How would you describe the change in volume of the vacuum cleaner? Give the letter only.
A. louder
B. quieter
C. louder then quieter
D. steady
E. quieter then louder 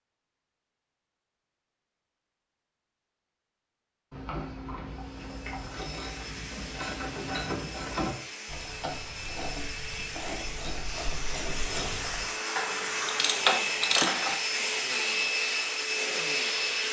A.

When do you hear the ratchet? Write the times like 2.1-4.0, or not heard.
4.1-14.3.